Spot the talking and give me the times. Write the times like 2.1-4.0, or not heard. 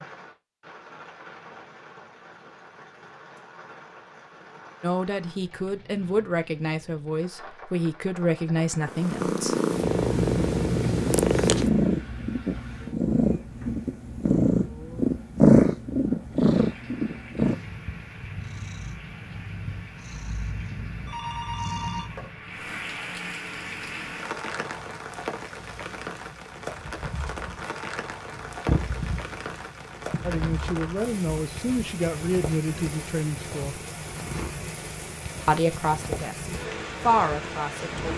4.8-9.6, 30.2-33.8, 35.5-38.1.